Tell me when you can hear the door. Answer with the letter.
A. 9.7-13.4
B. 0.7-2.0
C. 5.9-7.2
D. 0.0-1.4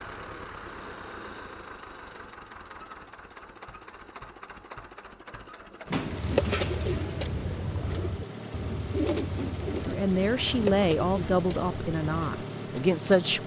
C.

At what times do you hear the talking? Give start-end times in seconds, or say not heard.
9.7-13.4.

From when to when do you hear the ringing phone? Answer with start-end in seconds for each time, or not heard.
not heard.